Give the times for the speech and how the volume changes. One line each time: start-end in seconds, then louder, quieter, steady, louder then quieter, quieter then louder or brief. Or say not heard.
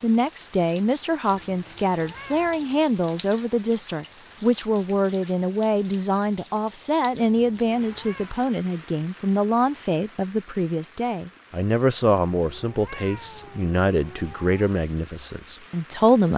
0.0-16.3 steady.